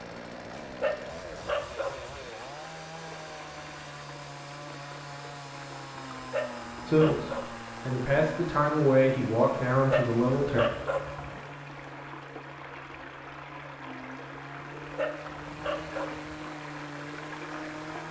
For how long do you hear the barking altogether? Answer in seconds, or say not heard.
6 s.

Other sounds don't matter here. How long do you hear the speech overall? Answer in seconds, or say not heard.
4 s.